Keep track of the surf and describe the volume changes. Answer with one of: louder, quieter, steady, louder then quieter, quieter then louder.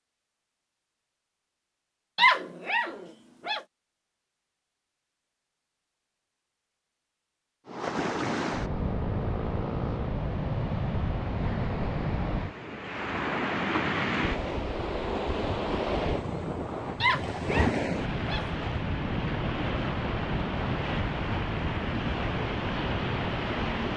steady.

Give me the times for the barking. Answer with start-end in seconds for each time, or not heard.
2.1-3.6, 17.0-18.5.